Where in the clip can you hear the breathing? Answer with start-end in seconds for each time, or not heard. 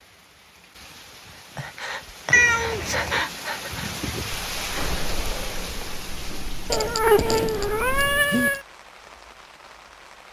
1.4-8.5.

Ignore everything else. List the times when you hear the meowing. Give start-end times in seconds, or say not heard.
2.3-3.2, 6.7-8.6.